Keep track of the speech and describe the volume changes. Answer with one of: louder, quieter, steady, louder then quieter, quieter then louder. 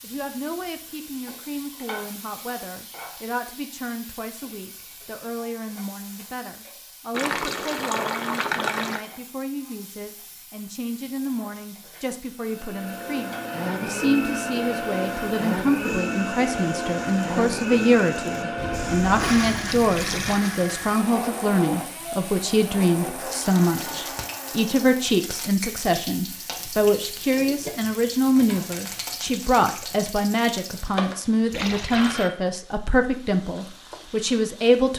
louder.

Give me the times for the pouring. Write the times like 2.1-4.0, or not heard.
7.1-9.0, 18.6-20.4, 31.5-32.2.